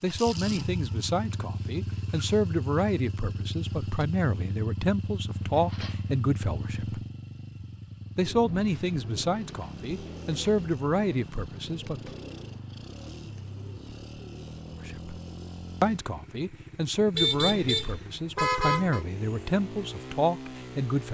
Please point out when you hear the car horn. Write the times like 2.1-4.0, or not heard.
5.3-6.2, 17.1-19.1.